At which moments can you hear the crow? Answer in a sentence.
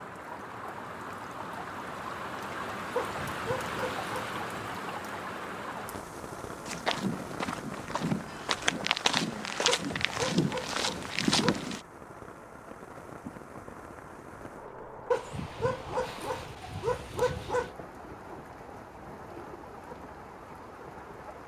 You can't hear the crow here.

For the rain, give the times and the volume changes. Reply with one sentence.
You can hear the rain from 0.0 to 21.4 s, getting quieter.